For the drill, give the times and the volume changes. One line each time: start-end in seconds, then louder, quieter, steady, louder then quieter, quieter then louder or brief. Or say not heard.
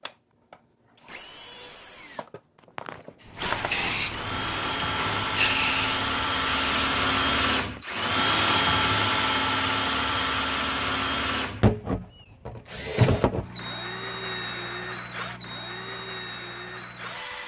0.0-17.4 louder then quieter.